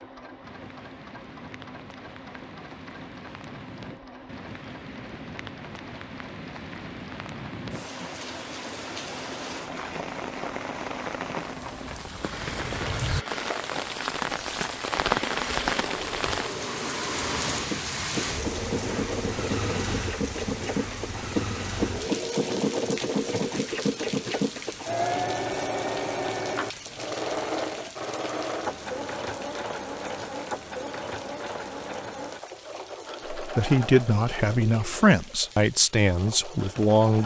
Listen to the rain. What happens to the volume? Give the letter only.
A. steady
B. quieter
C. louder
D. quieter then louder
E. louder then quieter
E.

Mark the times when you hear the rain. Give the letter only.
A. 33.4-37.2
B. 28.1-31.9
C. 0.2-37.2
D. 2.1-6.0
C.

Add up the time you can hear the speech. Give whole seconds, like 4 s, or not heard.
4 s.